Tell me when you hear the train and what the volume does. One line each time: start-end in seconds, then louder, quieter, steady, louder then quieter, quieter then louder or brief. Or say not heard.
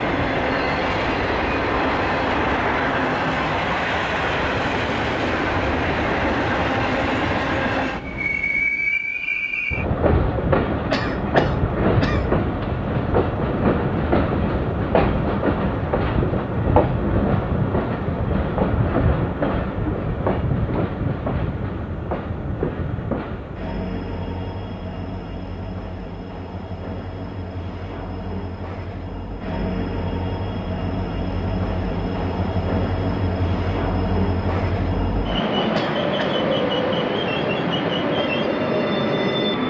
0.0-39.6 quieter then louder.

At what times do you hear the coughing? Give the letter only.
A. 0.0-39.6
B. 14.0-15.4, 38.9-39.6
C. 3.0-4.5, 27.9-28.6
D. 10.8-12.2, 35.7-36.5
D.